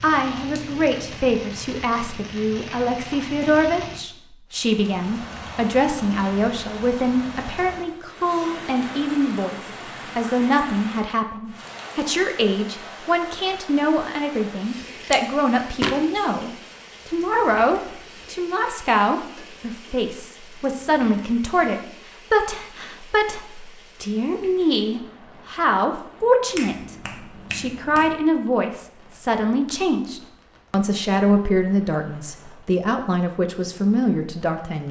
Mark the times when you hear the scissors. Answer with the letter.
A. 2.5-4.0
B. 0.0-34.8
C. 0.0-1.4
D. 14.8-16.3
D.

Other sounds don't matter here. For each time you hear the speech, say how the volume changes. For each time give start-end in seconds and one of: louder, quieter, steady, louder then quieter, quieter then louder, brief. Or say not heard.
0.0-34.8 steady.